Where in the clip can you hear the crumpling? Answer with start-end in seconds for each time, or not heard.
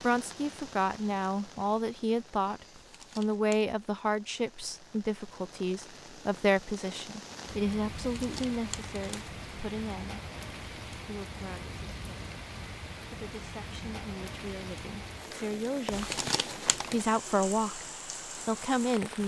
2.7-3.6, 8.0-9.3, 15.9-17.1.